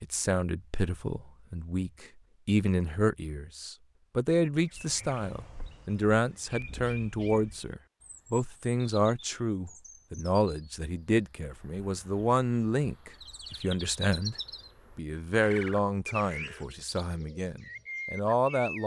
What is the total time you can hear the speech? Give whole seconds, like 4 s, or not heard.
18 s.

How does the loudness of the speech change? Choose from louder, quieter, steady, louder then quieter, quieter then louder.
steady.